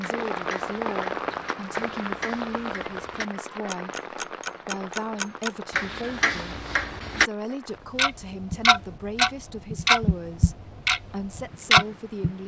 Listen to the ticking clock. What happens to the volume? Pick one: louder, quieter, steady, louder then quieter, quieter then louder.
louder.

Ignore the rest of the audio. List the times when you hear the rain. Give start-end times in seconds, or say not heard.
0.0-12.4.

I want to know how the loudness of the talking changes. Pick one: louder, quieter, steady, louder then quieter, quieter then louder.
steady.